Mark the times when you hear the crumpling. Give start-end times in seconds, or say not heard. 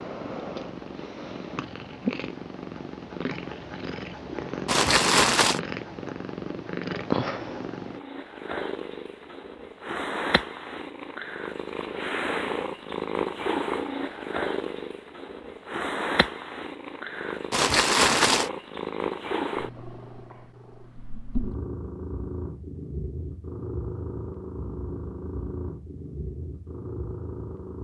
4.7-5.6, 17.5-18.5.